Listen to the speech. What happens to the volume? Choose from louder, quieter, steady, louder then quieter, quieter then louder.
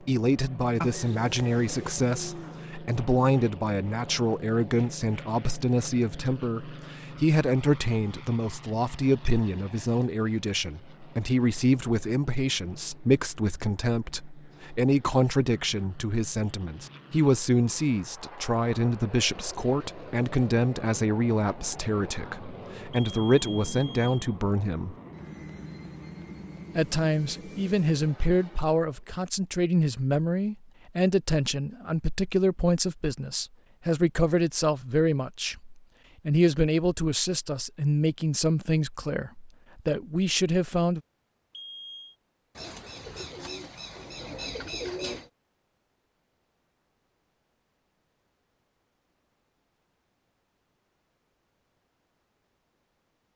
steady.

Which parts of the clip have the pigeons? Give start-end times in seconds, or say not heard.
0.8-2.6, 42.5-45.3.